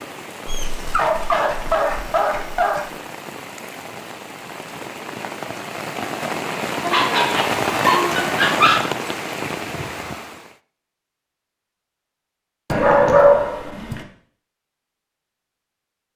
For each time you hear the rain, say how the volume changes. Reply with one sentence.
The rain can be heard from 0.0 to 10.6 s, getting louder.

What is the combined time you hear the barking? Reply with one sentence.
The barking can be heard for 6 seconds in total.